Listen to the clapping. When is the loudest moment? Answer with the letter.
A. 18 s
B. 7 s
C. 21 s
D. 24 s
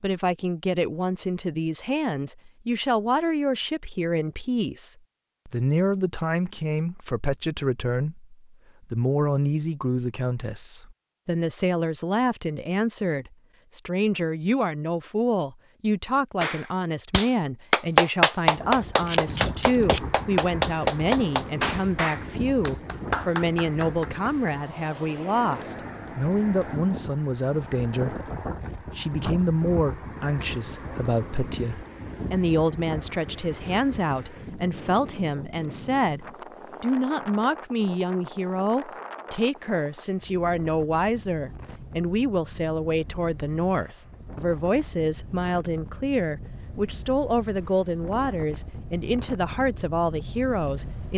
A.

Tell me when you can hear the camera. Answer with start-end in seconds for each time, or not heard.
19.1-20.1.